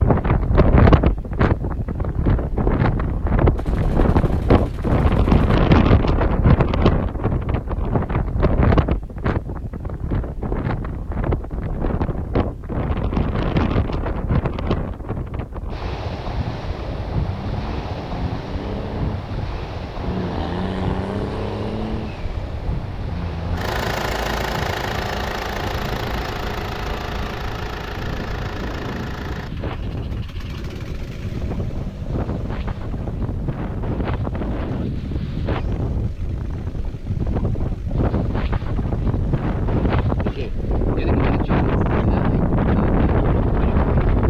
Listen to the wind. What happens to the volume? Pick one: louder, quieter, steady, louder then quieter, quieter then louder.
quieter then louder.